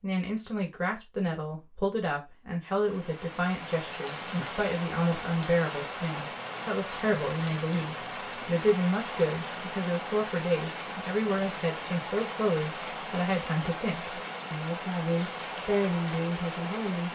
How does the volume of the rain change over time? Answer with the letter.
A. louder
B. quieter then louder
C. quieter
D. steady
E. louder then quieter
D.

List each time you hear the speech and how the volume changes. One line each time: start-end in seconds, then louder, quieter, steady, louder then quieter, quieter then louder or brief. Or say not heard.
0.0-17.0 steady.